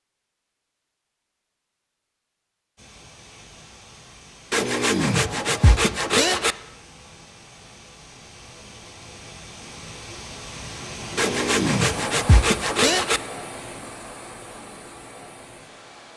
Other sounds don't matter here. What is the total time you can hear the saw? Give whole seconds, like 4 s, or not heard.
4 s.